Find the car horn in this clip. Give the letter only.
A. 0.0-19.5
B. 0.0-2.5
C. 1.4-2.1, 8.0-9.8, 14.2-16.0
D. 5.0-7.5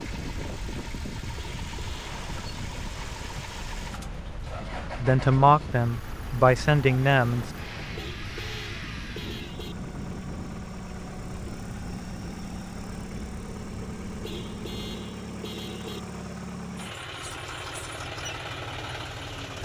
C.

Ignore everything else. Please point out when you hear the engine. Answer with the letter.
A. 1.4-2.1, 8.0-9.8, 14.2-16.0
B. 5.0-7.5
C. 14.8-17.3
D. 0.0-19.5
D.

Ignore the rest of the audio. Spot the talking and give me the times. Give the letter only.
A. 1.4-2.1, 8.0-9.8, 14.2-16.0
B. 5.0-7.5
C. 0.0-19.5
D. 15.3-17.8
B.